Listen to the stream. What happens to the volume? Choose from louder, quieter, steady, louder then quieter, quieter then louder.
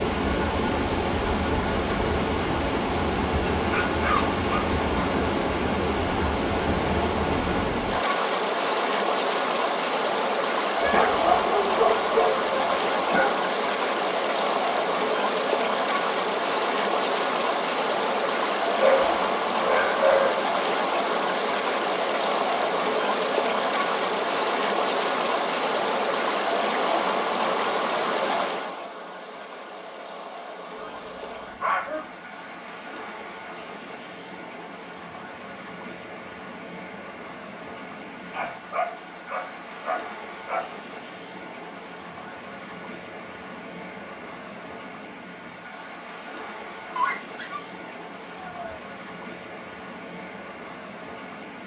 quieter.